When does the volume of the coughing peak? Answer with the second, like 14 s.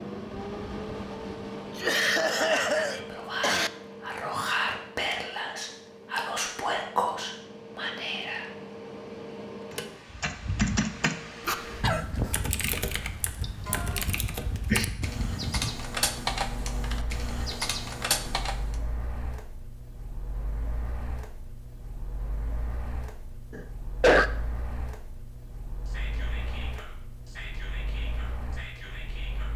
24 s.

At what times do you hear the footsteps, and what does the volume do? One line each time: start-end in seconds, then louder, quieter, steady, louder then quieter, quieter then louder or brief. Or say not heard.
not heard.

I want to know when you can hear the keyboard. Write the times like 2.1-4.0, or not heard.
9.7-18.8.